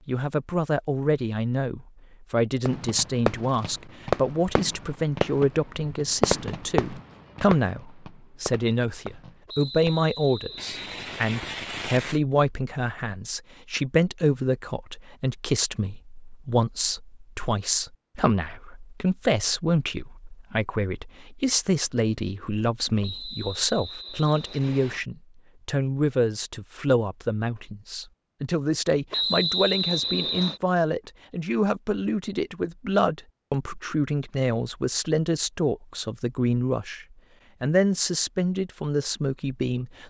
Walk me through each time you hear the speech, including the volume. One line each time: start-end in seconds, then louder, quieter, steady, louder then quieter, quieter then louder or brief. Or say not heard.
0.1-40.0 steady.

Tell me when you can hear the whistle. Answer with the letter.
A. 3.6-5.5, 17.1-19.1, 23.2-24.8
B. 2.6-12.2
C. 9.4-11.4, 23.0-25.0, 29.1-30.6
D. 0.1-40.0
C.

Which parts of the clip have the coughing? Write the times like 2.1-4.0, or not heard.
not heard.